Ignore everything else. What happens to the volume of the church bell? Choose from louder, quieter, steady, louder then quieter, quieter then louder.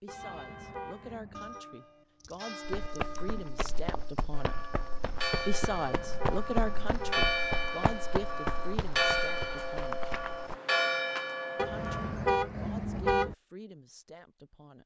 louder.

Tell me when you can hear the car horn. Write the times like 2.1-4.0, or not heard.
0.1-1.6, 5.5-7.3, 11.6-13.3.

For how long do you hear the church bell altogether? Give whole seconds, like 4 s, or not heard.
12 s.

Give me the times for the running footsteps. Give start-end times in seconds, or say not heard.
2.6-10.6.